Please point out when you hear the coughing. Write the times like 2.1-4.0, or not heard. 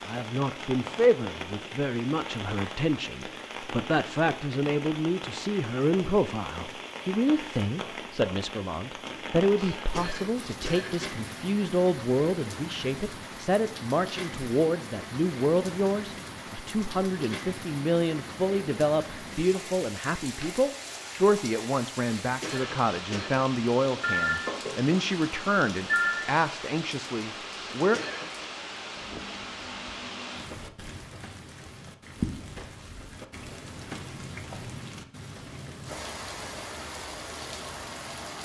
9.6-11.1, 22.2-23.3, 27.6-28.5.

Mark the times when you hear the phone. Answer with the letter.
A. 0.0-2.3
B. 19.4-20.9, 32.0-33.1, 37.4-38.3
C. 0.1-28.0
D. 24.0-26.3
D.